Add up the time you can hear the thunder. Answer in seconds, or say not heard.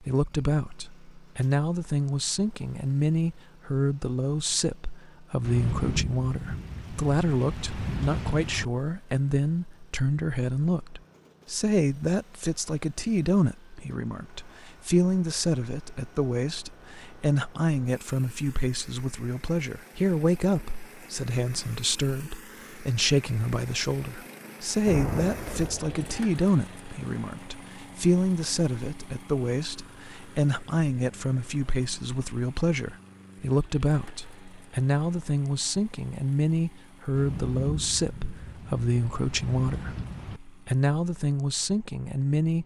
8 s.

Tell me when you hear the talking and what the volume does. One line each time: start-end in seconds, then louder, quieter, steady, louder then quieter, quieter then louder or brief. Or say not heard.
0.0-42.6 steady.